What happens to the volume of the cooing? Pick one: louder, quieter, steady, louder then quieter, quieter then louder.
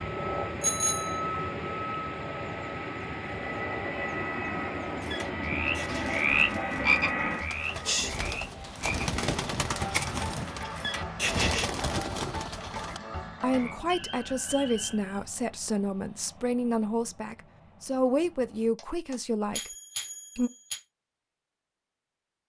louder.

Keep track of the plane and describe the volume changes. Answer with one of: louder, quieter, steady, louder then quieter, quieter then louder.
quieter.